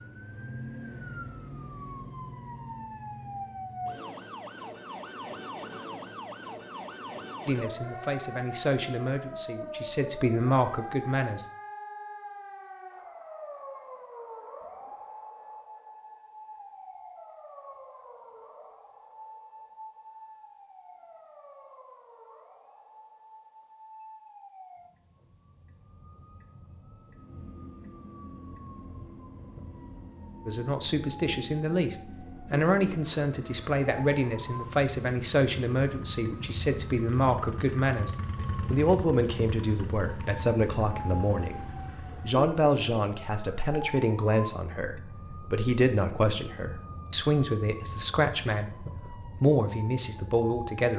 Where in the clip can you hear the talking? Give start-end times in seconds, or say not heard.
7.5-11.4, 30.4-50.9.